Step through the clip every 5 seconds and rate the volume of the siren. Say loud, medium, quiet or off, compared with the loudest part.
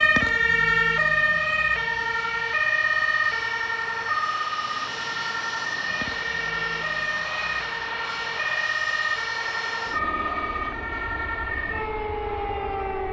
loud, medium, medium.